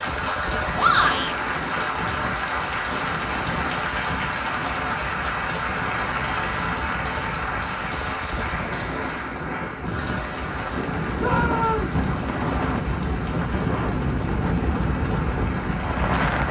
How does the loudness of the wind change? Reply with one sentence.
The volume of the wind goes up.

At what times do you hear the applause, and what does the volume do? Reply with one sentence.
The applause can be heard from 0.0 to 16.4 s, getting quieter.